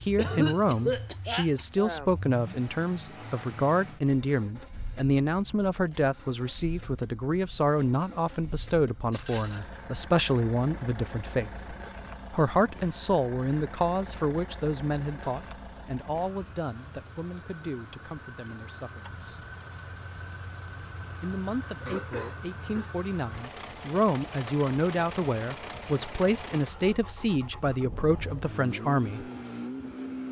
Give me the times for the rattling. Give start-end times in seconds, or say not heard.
9.1-9.7.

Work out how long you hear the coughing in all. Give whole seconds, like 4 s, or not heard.
3 s.